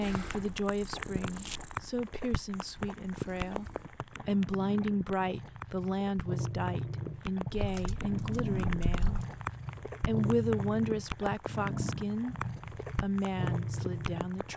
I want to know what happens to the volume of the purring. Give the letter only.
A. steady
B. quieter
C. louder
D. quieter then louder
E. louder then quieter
C.